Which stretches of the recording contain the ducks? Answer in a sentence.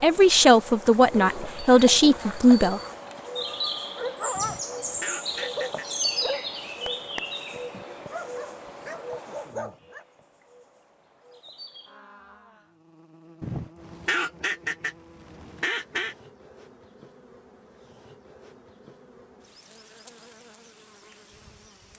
You can hear the ducks from 4.3 to 6.2 s and from 13.4 to 16.1 s.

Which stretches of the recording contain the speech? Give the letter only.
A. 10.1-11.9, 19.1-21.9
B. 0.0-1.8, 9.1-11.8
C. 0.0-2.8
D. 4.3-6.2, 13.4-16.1
C.